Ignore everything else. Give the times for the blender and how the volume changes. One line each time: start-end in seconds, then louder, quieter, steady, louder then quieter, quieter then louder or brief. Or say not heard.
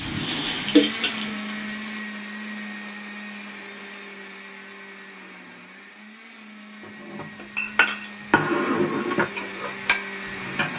0.0-10.7 quieter then louder.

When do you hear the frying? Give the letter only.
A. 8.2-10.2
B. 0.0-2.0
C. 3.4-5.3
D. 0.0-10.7
B.